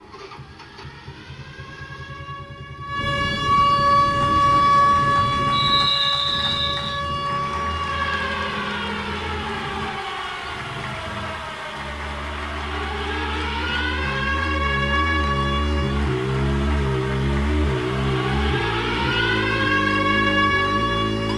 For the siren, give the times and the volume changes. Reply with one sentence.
You can hear the siren from 0.0 to 21.3 s, getting quieter then louder.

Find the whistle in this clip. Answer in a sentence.
You can hear the whistle from 5.5 to 7.0 s.